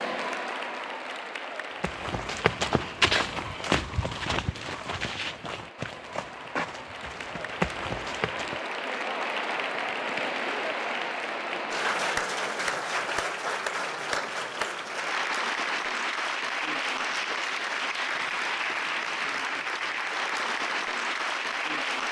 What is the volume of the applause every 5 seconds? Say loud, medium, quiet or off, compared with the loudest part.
medium, medium, loud, loud, loud.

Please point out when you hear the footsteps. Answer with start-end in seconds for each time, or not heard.
1.8-8.6.